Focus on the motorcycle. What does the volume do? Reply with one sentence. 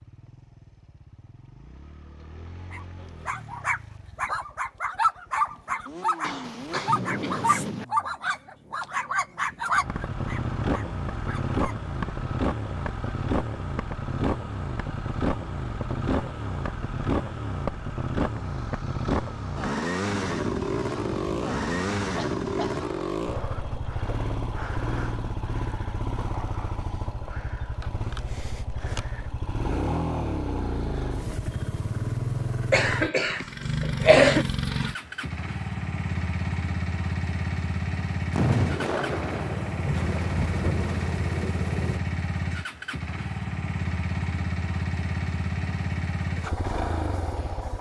The loudness of the motorcycle goes up.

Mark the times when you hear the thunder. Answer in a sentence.
You can hear the thunder from 6.4 to 7.8 s, from 20.1 to 22.9 s and from 38.3 to 42.0 s.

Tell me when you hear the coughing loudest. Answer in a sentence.
The loudest moment of the coughing is at 34 seconds.